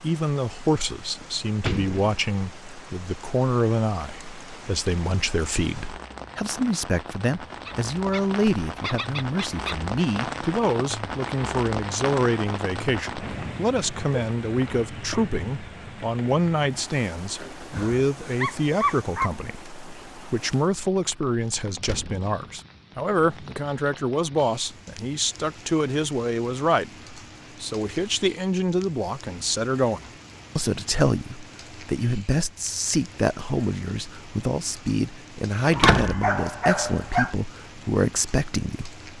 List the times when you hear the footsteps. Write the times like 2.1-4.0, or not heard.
not heard.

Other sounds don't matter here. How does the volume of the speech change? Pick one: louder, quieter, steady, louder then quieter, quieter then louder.
steady.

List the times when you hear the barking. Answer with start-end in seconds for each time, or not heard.
7.6-9.9, 17.7-19.3, 35.8-37.4.